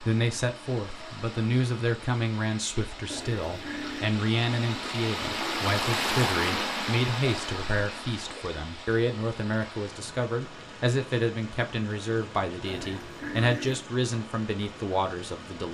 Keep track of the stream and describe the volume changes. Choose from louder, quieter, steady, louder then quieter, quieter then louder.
louder then quieter.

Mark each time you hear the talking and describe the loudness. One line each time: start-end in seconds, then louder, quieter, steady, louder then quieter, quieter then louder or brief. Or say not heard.
0.0-15.6 steady.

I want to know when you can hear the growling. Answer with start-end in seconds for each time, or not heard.
3.1-4.1, 12.7-13.8.